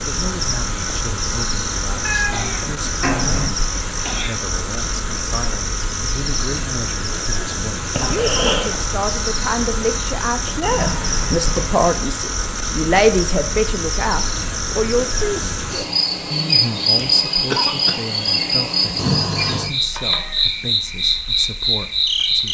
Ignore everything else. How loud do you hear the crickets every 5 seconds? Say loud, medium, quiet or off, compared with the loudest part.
medium, medium, medium, loud, loud.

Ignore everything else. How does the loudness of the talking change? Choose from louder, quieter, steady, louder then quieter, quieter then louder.
louder then quieter.